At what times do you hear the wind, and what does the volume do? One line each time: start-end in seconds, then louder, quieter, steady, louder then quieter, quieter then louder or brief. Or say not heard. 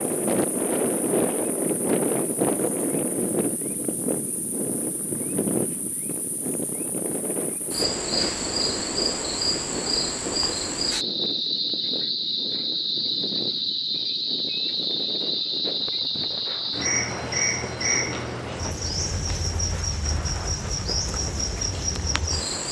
0.0-22.6 quieter.